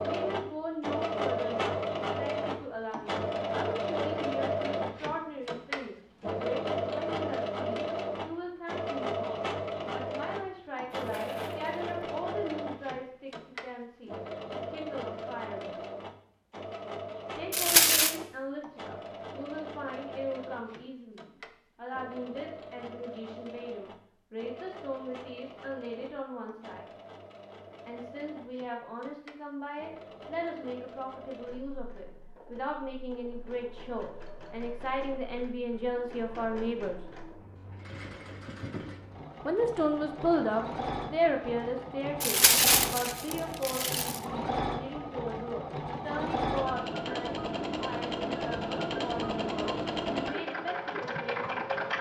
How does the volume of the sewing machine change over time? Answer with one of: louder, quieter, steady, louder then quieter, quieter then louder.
quieter then louder.